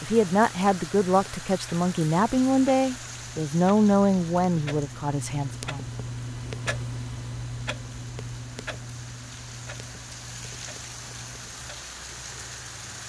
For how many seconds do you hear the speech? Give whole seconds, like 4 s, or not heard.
6 s.